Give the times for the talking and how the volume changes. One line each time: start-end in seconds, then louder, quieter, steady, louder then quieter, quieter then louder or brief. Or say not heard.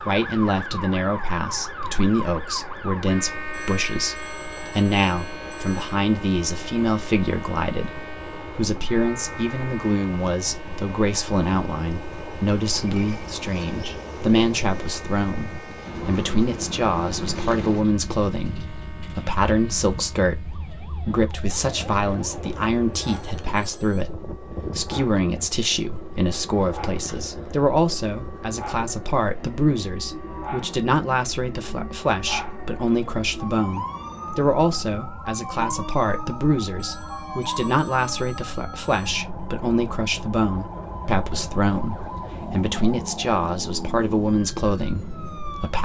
0.0-45.7 steady.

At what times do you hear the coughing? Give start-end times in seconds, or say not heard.
not heard.